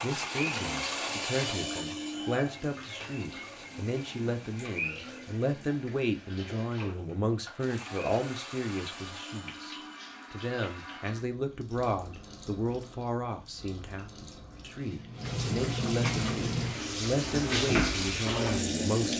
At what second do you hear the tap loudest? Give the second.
18 s.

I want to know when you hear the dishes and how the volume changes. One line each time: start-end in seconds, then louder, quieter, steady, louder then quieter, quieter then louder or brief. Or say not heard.
not heard.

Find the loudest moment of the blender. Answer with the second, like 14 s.
1 s.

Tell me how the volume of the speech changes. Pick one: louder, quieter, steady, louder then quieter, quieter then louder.
steady.